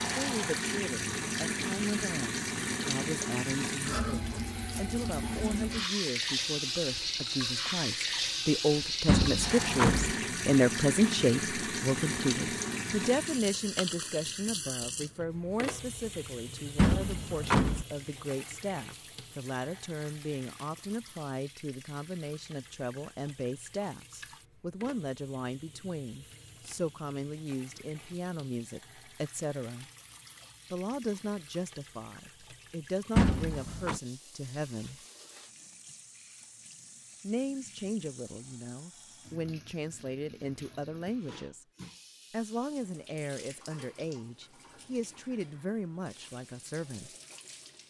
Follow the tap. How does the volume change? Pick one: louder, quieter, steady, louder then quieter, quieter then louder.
quieter.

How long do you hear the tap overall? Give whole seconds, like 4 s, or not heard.
48 s.